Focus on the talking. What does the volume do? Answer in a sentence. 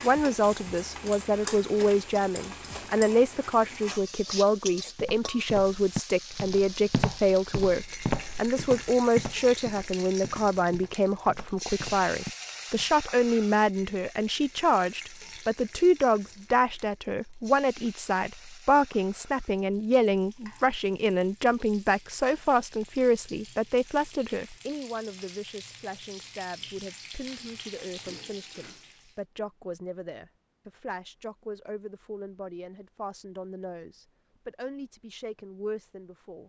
The volume of the talking goes down.